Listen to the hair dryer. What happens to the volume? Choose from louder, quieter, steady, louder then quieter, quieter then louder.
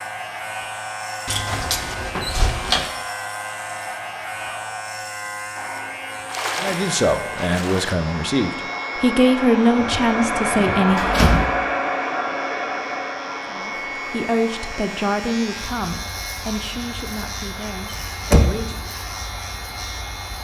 louder then quieter.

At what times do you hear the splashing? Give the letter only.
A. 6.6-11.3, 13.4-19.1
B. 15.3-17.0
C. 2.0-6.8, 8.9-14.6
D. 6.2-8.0
D.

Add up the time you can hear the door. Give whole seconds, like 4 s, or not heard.
4 s.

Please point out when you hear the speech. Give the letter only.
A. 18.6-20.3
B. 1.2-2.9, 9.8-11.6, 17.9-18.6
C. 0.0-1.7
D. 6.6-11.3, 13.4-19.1
D.